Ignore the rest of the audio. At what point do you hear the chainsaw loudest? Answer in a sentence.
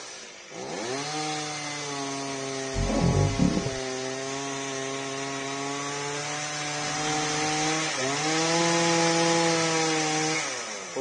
The loudest moment of the chainsaw is at 9 seconds.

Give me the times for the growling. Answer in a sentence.
You can hear the growling from 2.7 to 3.8 s and from 6.8 to 7.5 s.